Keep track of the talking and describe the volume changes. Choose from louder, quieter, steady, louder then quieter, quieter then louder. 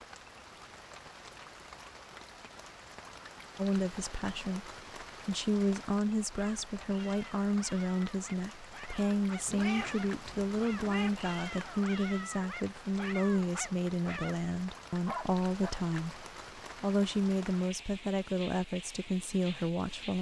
steady.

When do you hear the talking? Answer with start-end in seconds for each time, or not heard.
3.5-20.1.